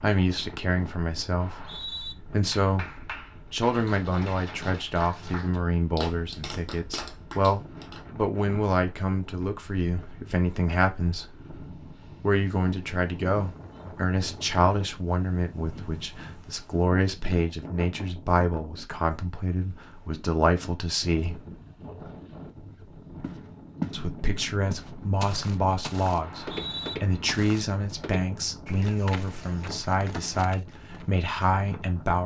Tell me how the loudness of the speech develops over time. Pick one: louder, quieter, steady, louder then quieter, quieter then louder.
steady.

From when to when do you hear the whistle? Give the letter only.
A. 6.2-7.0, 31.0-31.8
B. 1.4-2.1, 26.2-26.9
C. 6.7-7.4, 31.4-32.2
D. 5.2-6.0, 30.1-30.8
B.